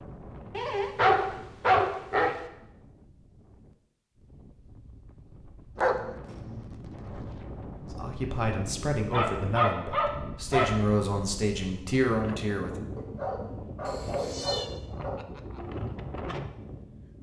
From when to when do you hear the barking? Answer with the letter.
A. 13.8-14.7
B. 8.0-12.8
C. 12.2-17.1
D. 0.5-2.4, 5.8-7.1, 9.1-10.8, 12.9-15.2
D.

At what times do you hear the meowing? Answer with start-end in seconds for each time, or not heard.
13.8-14.7.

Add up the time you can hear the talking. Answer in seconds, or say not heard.
5 s.